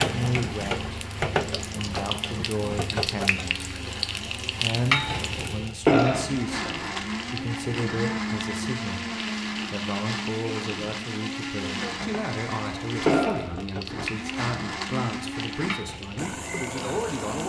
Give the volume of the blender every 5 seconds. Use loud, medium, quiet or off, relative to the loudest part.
medium, loud, loud, loud.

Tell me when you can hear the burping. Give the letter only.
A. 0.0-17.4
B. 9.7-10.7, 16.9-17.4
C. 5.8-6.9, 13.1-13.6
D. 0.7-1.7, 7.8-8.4
C.